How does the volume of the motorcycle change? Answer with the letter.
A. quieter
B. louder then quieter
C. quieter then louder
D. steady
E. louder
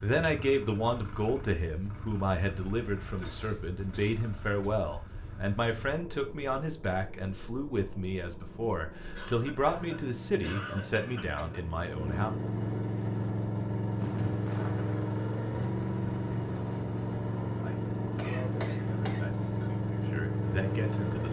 E.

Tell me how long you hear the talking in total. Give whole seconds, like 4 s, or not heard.
16 s.